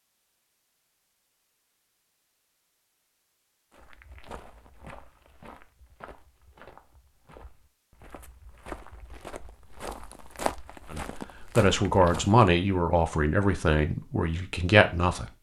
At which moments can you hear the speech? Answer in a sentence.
You can hear the speech from 10.9 to 15.3 s.